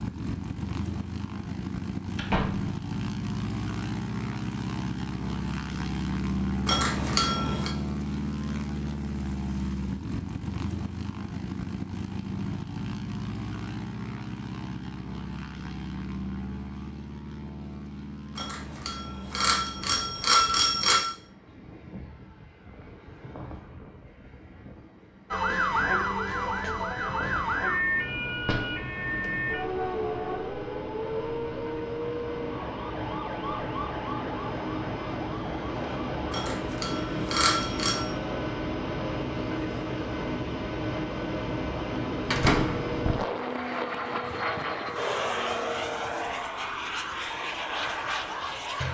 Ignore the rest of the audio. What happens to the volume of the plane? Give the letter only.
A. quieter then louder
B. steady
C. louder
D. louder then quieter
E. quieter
A.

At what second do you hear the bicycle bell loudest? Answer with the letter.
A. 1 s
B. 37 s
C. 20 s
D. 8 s
C.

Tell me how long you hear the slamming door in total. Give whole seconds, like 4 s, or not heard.
2 s.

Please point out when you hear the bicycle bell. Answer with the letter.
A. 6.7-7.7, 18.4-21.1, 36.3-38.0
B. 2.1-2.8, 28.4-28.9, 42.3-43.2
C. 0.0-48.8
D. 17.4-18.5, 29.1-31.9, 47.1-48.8
A.